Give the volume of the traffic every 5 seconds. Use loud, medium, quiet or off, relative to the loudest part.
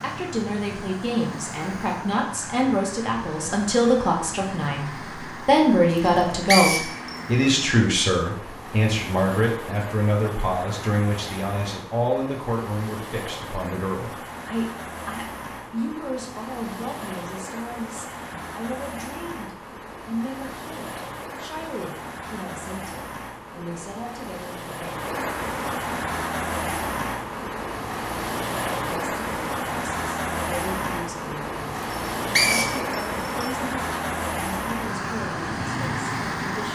medium, medium, medium, medium, medium, loud, loud, loud.